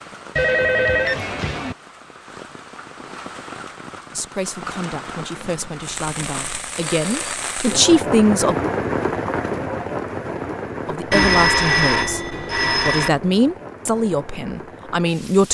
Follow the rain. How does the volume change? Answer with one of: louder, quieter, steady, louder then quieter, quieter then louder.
louder then quieter.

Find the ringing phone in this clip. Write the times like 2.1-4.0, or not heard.
0.3-1.8, 5.3-7.3, 11.1-13.1.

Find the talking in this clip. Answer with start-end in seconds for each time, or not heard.
4.1-8.6, 10.8-15.4.